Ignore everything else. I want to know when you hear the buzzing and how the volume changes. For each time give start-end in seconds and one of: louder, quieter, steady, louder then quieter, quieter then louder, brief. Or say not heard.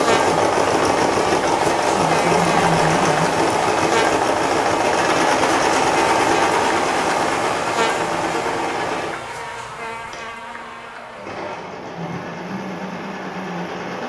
0.0-14.0 quieter.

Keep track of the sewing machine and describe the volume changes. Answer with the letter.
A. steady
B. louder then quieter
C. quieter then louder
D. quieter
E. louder
D.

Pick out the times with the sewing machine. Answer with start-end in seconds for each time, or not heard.
0.0-14.0.